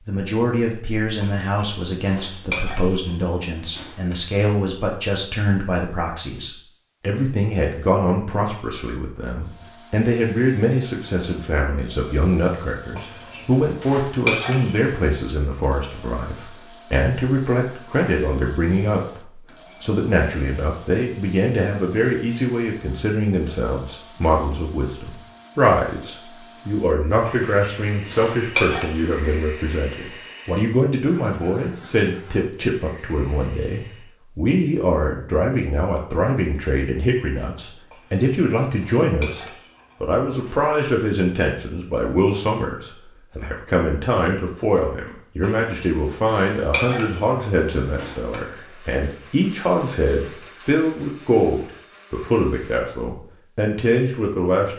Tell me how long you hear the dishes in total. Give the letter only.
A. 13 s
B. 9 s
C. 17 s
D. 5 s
A.